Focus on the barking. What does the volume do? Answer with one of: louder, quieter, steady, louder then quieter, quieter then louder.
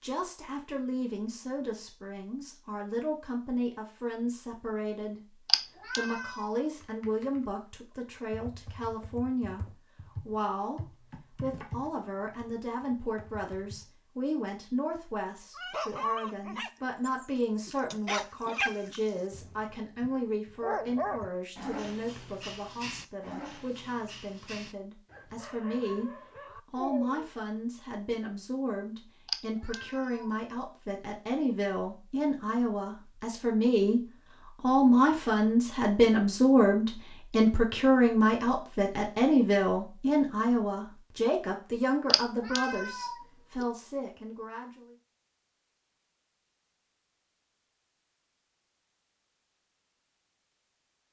quieter.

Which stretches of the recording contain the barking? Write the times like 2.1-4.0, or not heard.
15.6-27.3.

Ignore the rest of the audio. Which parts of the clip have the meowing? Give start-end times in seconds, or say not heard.
5.5-6.5, 29.2-30.4, 42.1-43.1.